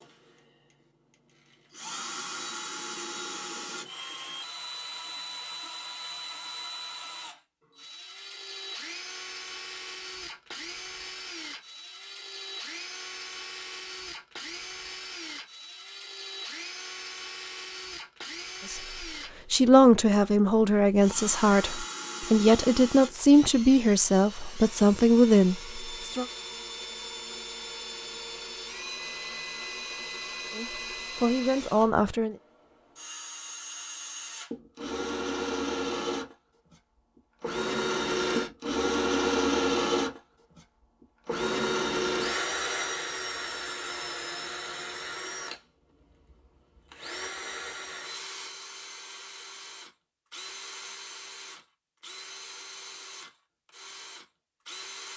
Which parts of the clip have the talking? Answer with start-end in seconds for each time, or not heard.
18.6-26.2, 30.6-32.4.